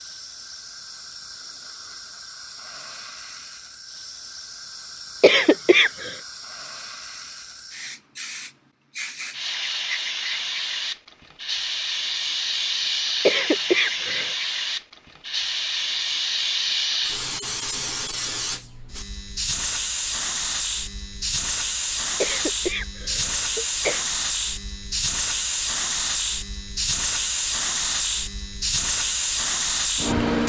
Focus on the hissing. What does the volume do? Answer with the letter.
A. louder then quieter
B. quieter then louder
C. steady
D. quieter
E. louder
E.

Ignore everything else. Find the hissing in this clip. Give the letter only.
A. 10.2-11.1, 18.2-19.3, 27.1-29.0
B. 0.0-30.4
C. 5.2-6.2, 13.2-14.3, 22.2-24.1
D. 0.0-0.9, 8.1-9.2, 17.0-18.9
B.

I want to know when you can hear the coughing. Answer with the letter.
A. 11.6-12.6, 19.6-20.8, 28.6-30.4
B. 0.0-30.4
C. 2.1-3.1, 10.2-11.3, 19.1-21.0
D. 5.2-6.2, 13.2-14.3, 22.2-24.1
D.